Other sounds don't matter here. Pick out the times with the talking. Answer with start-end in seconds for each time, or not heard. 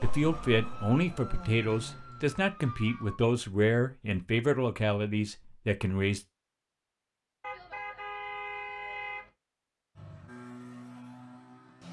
0.0-6.2.